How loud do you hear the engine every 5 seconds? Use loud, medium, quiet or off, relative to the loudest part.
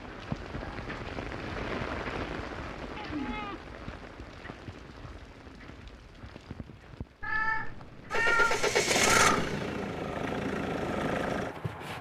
off, loud, medium.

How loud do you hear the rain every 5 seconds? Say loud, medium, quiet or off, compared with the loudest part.
loud, quiet, off.